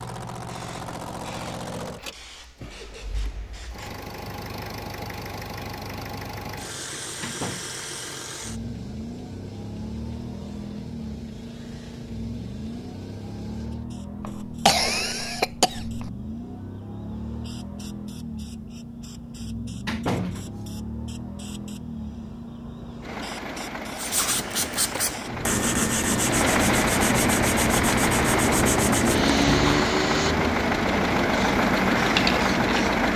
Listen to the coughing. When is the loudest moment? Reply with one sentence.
The loudest moment of the coughing is at 15 seconds.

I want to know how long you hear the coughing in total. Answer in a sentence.
You can hear the coughing for 2 seconds altogether.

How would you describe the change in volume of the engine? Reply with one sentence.
The loudness of the engine goes up.